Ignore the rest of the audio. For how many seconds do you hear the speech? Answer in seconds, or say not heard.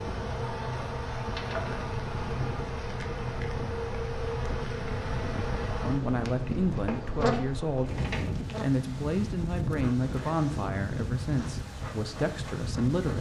7 s.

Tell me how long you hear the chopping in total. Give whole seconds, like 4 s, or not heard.
not heard.